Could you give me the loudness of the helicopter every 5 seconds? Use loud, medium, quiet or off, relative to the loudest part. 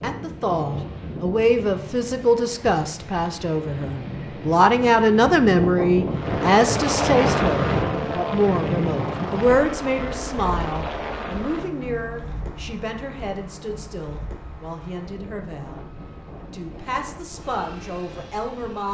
off, loud, medium, quiet.